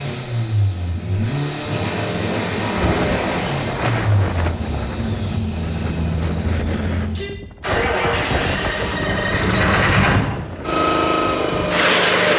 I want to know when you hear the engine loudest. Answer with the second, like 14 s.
10 s.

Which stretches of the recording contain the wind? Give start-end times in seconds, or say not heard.
2.8-12.3.